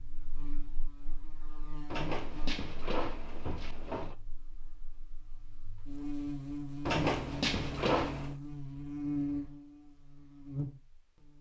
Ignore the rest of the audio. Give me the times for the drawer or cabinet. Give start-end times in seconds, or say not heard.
1.9-4.2, 6.8-8.3.